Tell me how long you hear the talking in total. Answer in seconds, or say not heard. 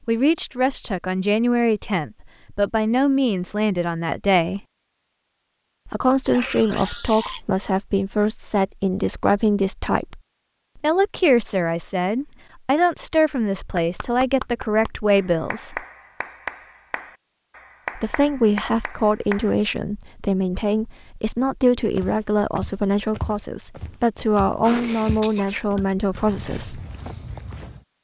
23 s.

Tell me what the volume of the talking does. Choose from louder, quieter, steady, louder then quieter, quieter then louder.
steady.